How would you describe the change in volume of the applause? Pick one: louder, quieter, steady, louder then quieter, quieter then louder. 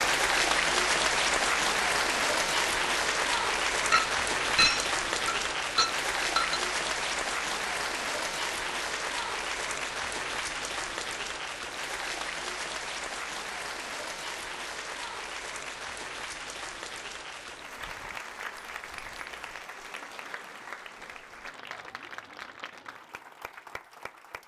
quieter.